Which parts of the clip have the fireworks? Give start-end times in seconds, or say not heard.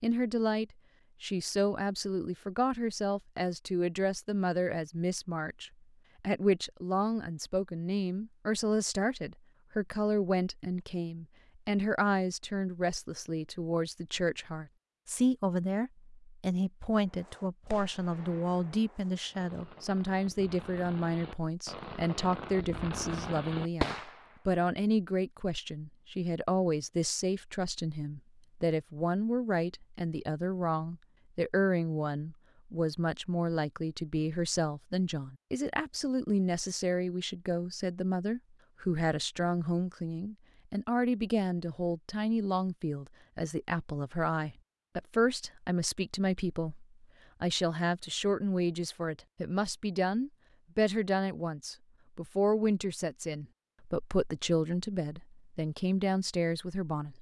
17.0-24.4.